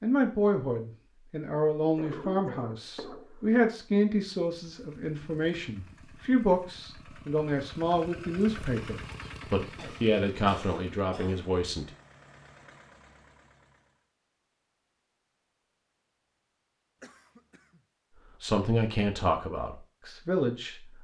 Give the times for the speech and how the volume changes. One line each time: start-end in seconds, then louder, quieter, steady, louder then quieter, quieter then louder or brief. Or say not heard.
0.0-11.9 steady
18.4-20.9 brief.